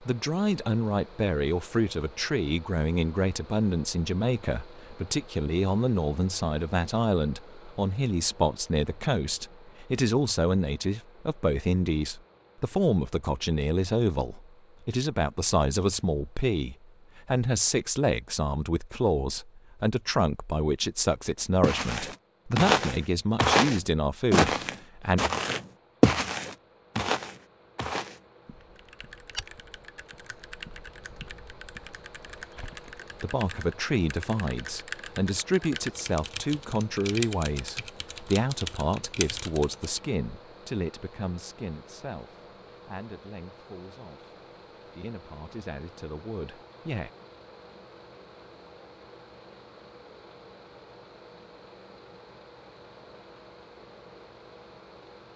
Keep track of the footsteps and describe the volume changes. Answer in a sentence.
The volume of the footsteps goes down.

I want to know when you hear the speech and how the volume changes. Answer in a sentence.
The speech can be heard from 0.0 to 25.2 s, at a steady volume; and from 33.2 to 47.1 s, getting quieter.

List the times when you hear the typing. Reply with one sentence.
The typing can be heard from 28.8 to 39.9 s.